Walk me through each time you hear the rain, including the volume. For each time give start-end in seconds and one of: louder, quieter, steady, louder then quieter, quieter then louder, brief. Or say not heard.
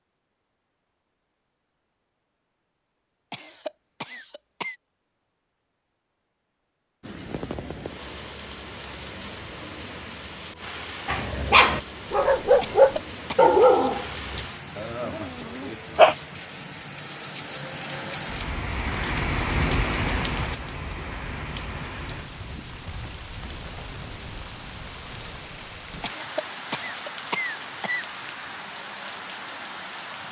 7.0-30.2 louder then quieter.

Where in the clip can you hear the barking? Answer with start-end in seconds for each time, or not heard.
11.1-16.1.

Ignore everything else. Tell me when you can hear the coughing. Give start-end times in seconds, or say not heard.
3.3-4.8, 12.6-13.6, 26.0-28.1.